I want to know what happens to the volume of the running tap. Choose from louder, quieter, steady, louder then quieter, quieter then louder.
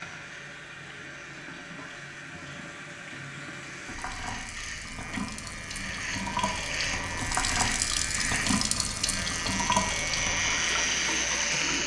louder.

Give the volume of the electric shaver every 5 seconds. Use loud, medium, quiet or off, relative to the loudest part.
quiet, medium, loud.